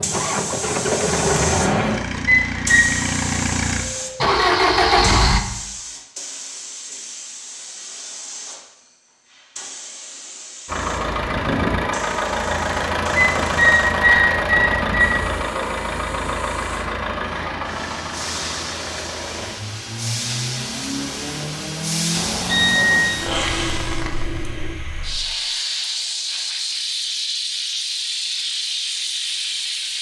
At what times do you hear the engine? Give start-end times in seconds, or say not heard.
0.0-5.5, 10.7-24.8.